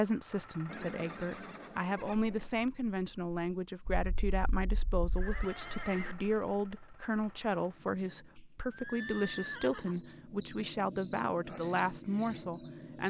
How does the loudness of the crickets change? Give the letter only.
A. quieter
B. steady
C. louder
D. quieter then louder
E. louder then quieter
C.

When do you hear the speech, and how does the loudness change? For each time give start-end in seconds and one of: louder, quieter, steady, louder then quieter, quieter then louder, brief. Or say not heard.
0.0-13.0 steady.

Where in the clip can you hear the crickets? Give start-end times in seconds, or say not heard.
1.9-13.0.